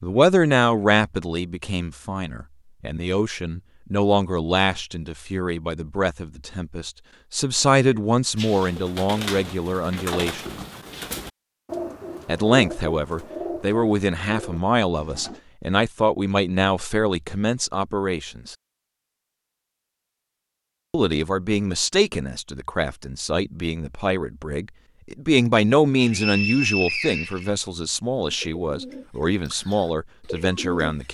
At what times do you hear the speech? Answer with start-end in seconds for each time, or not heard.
0.0-10.6, 12.2-18.6, 20.9-31.0.